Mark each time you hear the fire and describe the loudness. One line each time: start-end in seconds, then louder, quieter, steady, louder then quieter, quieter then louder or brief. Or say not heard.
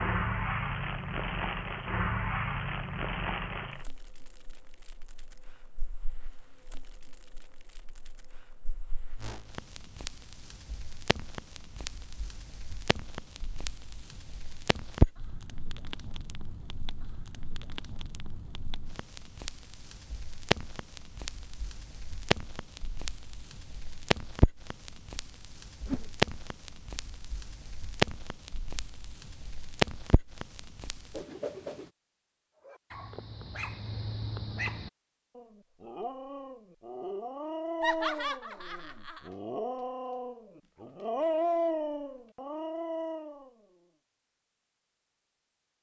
0.0-31.2 quieter then louder.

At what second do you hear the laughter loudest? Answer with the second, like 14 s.
38 s.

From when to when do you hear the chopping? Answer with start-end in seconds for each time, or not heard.
not heard.